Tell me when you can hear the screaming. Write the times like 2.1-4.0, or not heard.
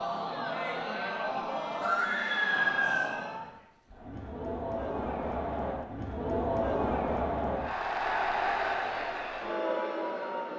1.8-3.1.